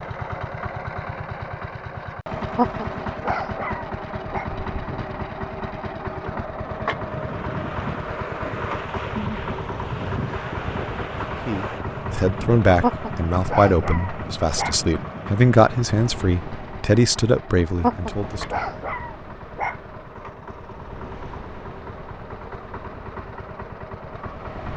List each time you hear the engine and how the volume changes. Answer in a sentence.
The engine can be heard from 0.0 to 24.7 s, getting quieter.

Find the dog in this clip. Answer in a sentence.
The dog can be heard from 2.5 to 4.5 s, from 12.8 to 14.8 s and from 17.8 to 19.8 s.